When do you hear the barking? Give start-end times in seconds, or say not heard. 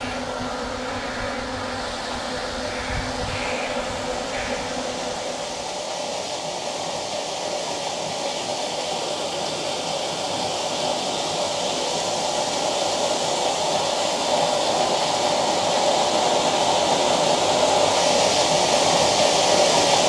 not heard.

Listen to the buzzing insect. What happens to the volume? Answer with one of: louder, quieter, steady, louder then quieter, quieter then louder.
steady.